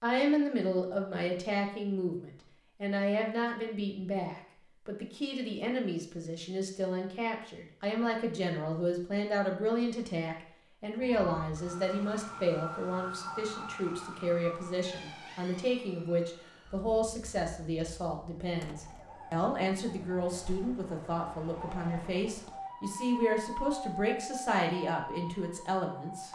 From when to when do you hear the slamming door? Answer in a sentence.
The slamming door can be heard from 18.6 to 19.1 s.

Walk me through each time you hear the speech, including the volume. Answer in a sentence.
The speech can be heard from 0.0 to 26.3 s, at a steady volume.